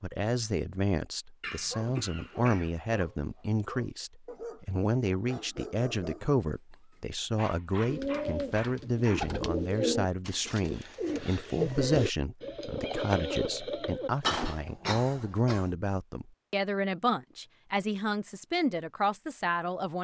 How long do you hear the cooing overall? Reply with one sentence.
The cooing can be heard for 7 seconds in total.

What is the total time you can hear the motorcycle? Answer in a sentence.
You can't hear the motorcycle here.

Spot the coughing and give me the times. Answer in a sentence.
The coughing can be heard from 1.4 to 2.7 s and from 14.2 to 15.7 s.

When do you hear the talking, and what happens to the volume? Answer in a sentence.
You can hear the talking from 0.0 to 19.9 s, at a steady volume.